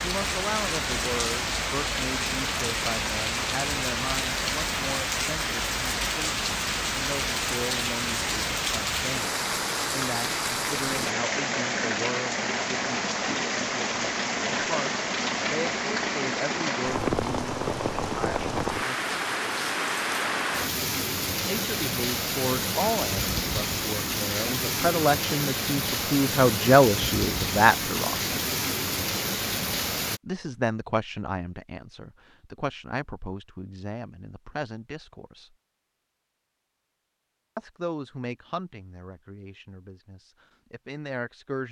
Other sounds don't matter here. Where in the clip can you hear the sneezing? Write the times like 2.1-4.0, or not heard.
not heard.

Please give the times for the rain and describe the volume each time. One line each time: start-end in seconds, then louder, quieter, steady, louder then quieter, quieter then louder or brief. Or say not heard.
0.0-30.2 steady.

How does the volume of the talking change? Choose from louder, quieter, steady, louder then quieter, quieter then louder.
louder then quieter.